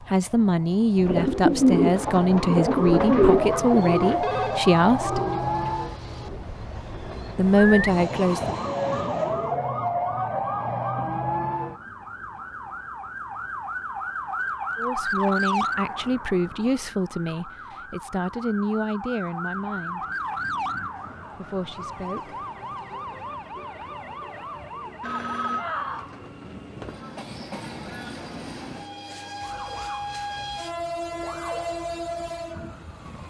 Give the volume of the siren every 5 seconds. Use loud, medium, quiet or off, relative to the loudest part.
loud, loud, loud, loud, medium, medium, quiet.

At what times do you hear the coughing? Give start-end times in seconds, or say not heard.
not heard.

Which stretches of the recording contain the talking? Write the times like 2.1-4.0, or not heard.
0.0-5.2, 7.3-8.6, 14.8-20.1, 21.3-22.4.